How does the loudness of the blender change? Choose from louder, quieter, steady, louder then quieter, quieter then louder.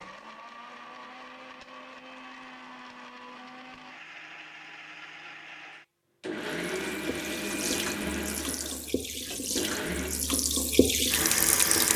louder.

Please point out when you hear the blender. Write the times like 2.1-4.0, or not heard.
0.0-10.3.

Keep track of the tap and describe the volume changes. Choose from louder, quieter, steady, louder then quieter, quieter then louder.
louder.